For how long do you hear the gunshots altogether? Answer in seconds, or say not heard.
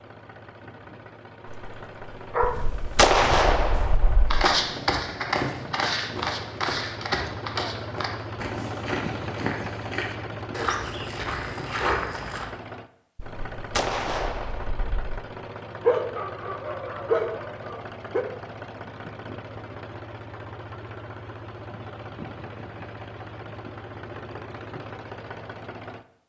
4 s.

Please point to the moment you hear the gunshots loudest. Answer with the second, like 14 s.
3 s.